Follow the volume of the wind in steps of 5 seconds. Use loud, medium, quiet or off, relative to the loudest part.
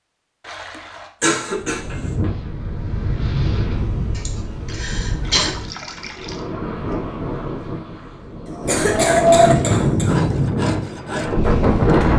medium, loud, loud.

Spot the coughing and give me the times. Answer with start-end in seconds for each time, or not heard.
1.2-2.1, 4.2-5.5, 8.4-10.2.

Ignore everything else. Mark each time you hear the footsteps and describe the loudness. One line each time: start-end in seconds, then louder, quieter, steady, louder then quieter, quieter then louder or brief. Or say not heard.
not heard.